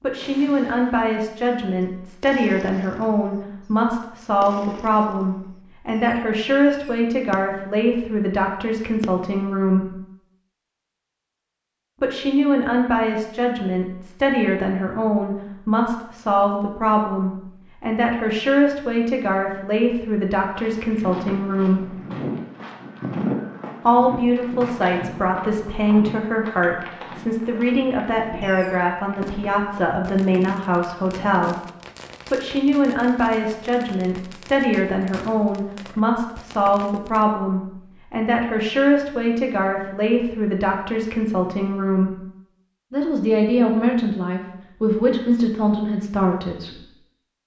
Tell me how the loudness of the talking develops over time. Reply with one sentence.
The loudness of the talking stays about the same.